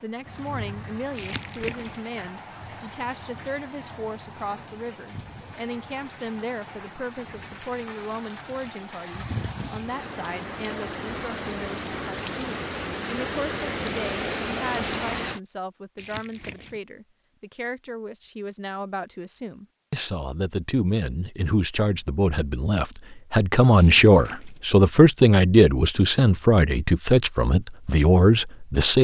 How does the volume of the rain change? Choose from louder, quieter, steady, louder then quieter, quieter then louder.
louder.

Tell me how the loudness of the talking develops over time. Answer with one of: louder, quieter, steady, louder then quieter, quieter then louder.
louder.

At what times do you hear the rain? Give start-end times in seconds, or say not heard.
0.0-15.4.